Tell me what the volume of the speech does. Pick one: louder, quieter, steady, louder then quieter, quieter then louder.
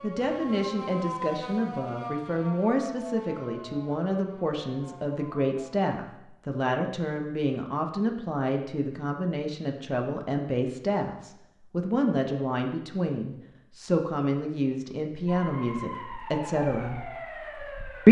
steady.